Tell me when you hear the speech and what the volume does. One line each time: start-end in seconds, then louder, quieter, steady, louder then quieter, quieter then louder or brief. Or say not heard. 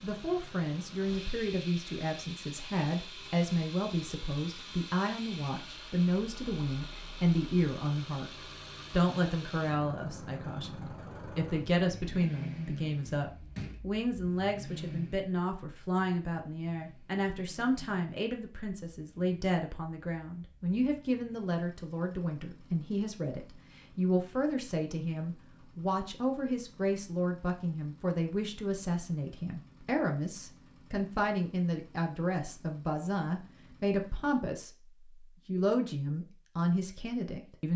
0.0-37.7 steady.